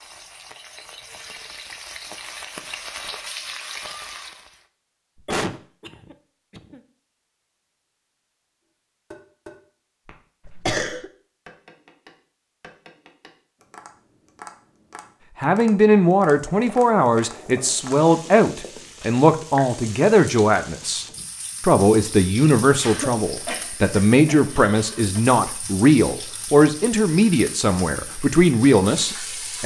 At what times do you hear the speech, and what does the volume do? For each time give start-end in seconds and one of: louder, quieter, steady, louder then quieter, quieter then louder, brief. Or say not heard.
15.4-29.6 steady.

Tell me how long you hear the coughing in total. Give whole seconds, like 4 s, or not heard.
5 s.